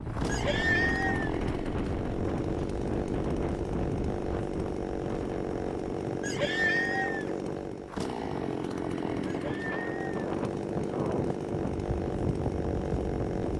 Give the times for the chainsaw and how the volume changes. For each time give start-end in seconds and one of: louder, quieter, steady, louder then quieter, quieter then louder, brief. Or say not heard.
0.0-13.5 steady.